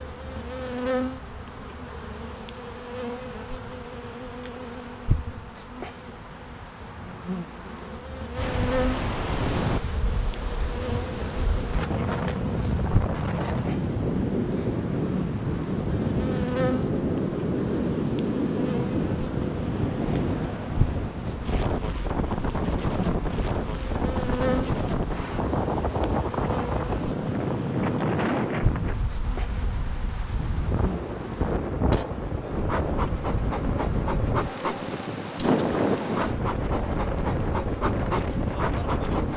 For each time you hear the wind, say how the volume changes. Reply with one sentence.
You can hear the wind from 8.3 to 39.3 s, at a steady volume.